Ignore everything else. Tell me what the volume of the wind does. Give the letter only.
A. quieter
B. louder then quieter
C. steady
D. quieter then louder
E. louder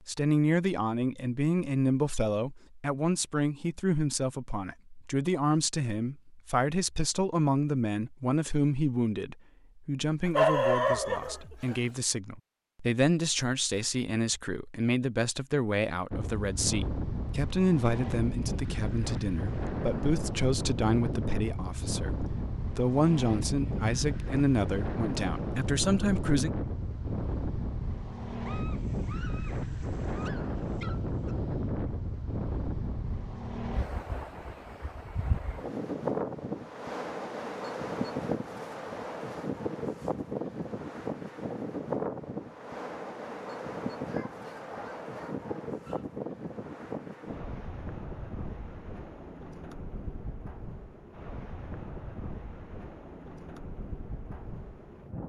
A.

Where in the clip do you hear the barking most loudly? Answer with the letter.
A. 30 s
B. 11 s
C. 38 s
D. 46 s
B.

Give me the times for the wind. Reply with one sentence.
You can hear the wind from 16.1 to 55.2 s.